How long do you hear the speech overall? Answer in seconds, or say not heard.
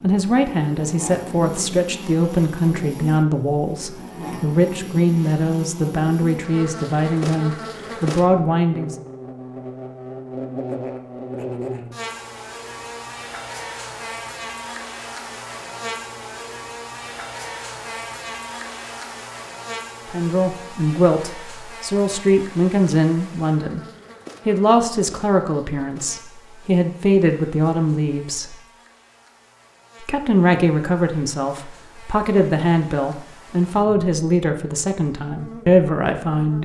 23 s.